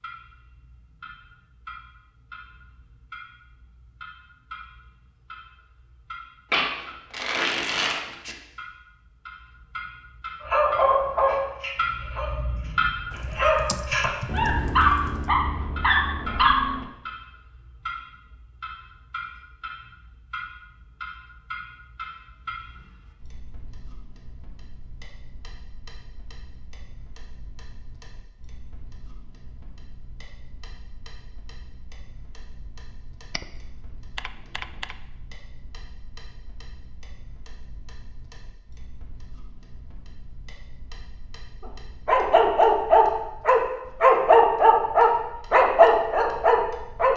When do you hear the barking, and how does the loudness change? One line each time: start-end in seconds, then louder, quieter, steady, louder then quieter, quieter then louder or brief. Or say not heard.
10.4-16.9 quieter then louder
41.6-47.1 steady.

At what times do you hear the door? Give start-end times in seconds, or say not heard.
not heard.